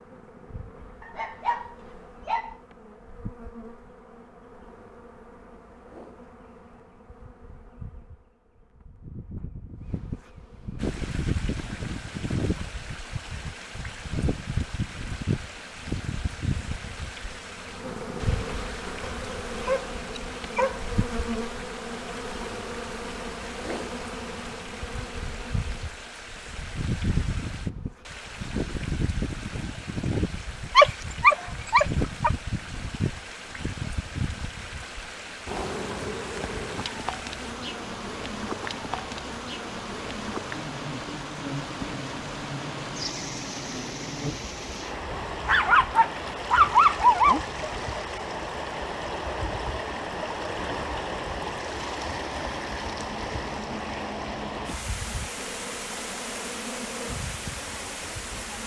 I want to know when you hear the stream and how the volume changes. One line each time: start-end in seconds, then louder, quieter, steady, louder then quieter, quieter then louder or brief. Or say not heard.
10.8-58.6 louder.